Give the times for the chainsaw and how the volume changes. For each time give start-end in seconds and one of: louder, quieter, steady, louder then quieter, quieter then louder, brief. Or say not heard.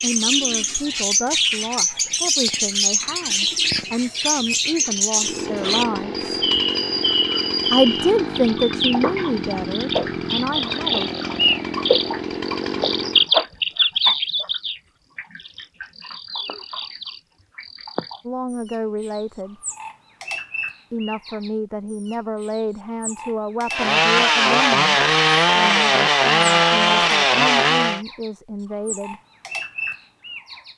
5.2-13.3 steady
23.7-28.0 steady.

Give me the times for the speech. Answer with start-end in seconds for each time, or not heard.
0.0-6.4, 7.7-11.1, 18.2-19.6, 20.9-29.2.